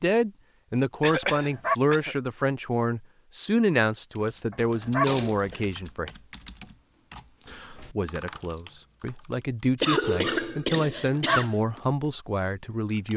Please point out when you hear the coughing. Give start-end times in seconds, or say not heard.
1.0-2.1, 5.0-5.7, 9.8-11.6.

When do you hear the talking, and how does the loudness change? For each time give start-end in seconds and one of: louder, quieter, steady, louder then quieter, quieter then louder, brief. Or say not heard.
0.0-6.1 steady
8.0-13.1 louder.